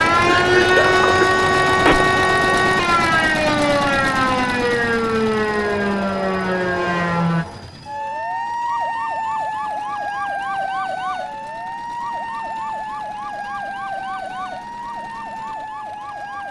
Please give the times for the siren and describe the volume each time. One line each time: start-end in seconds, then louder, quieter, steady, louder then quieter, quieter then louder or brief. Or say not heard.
0.0-16.4 quieter.